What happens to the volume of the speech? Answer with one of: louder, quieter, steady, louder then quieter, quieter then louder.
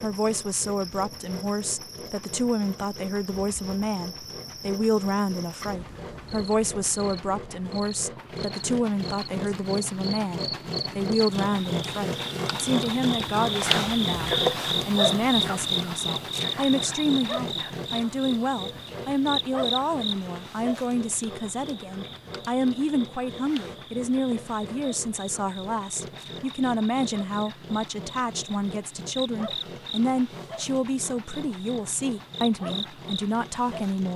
steady.